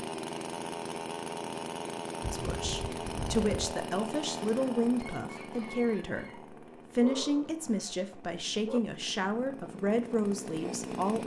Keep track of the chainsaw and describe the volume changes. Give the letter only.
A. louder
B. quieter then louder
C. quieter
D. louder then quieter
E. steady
B.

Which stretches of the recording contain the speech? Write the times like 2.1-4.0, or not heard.
2.3-11.2.